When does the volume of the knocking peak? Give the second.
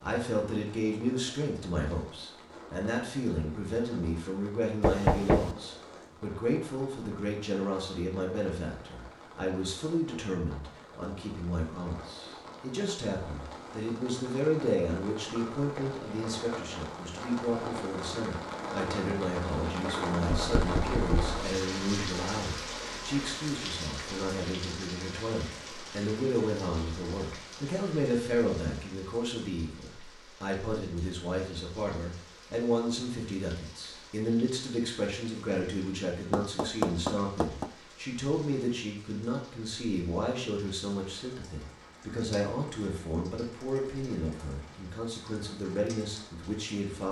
5 s.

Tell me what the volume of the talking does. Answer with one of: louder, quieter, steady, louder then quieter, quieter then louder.
steady.